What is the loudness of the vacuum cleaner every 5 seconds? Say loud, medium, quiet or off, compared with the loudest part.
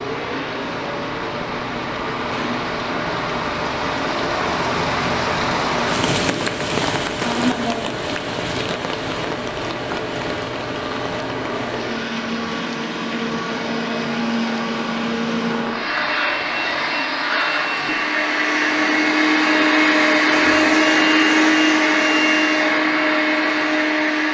quiet, quiet, medium, loud, loud.